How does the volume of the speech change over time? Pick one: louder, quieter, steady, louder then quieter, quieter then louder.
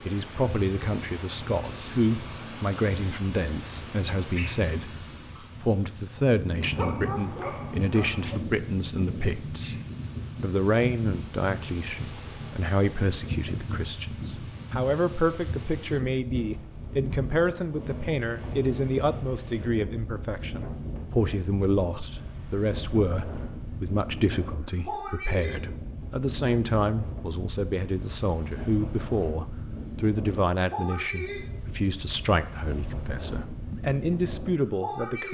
steady.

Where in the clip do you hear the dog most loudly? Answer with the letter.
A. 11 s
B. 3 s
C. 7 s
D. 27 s
C.